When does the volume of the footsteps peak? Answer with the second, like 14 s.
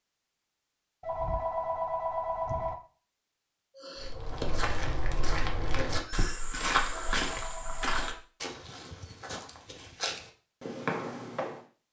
7 s.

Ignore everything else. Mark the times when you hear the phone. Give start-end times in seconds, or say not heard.
1.0-2.8, 6.9-8.2.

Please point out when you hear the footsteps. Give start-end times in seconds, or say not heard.
4.0-11.6.